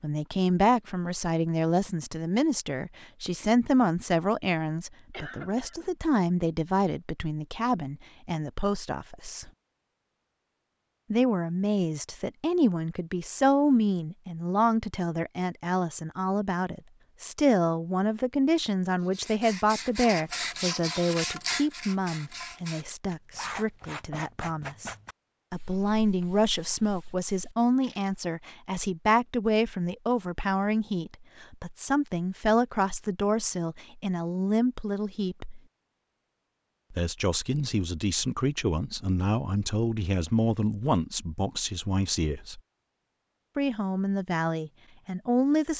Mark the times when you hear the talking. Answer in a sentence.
You can hear the talking from 0.0 to 9.5 s, from 11.1 to 35.6 s, from 36.9 to 42.6 s and from 43.5 to 45.7 s.